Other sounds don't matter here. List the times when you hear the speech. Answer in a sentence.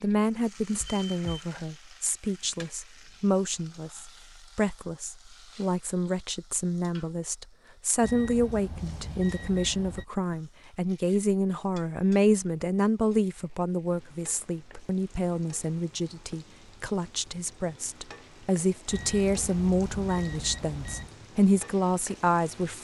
You can hear the speech from 0.0 to 22.7 s.